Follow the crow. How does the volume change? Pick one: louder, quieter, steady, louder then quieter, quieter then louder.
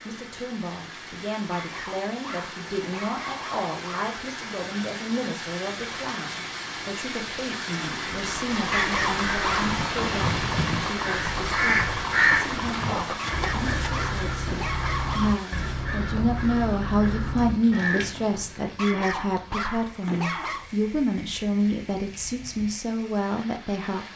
louder then quieter.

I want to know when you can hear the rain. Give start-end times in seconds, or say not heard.
0.0-24.1.